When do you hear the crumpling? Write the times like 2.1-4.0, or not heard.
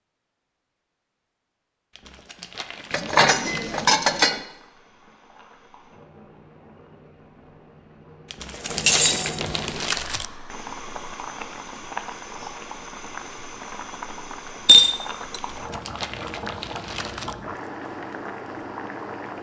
1.9-3.9, 8.3-10.2, 15.3-17.4.